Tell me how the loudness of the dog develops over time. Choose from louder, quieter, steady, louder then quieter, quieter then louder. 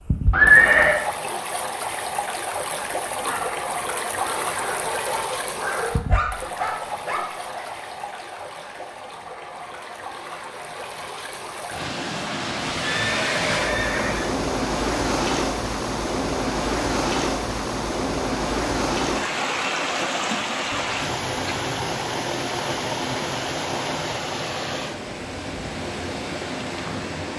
louder.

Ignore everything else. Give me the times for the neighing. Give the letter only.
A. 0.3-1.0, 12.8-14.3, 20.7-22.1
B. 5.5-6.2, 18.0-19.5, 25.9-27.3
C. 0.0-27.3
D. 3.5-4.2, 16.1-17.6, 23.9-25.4
A.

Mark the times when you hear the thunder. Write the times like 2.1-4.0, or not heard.
not heard.